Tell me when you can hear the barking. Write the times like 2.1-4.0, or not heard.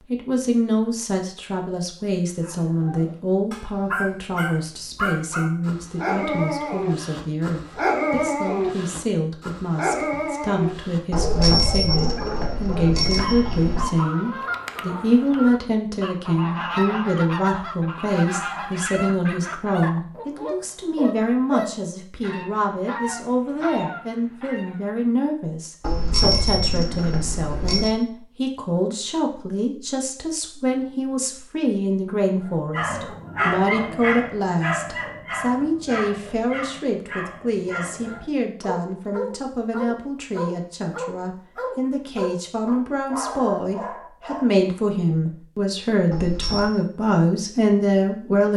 2.4-14.7, 32.5-44.7.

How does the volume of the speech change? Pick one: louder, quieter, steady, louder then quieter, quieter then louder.
steady.